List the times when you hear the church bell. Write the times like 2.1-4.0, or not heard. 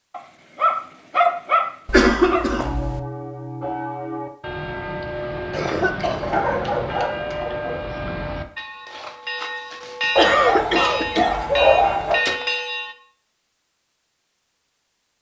2.5-12.9.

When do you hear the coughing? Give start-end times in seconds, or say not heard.
1.9-3.0, 5.5-7.5, 10.2-11.3.